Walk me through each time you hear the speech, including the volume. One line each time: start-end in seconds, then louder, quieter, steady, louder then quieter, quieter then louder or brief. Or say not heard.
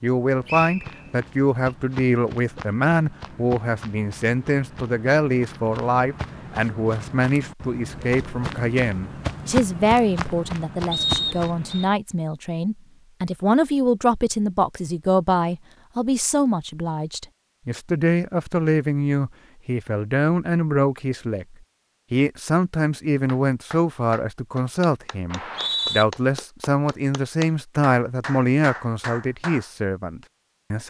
0.0-30.8 steady.